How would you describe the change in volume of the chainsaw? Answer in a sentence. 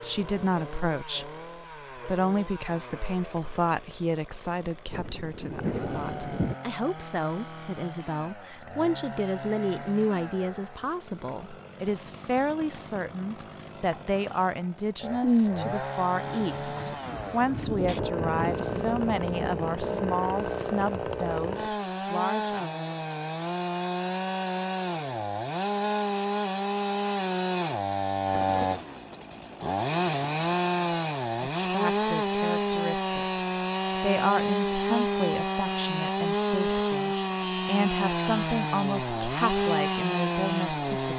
The loudness of the chainsaw goes up.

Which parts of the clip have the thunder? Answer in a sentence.
You can hear the thunder from 4.9 to 6.5 s, from 15.2 to 20.0 s and from 28.3 to 30.6 s.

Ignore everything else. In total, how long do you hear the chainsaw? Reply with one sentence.
You can hear the chainsaw for 41 seconds altogether.